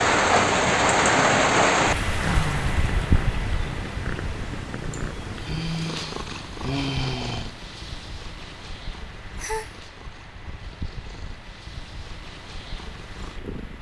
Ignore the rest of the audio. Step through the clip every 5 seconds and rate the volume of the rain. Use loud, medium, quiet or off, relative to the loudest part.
loud, quiet, quiet.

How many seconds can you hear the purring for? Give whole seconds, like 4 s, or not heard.
14 s.